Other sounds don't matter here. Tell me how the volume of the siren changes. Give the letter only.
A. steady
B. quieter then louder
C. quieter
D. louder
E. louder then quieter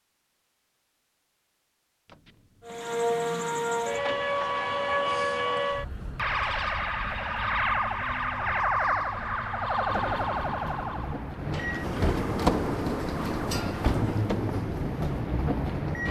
C.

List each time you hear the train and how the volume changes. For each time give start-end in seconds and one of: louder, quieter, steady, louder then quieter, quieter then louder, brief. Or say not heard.
9.8-16.0 louder.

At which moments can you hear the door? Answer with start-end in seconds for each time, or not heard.
2.0-4.7, 11.5-14.2.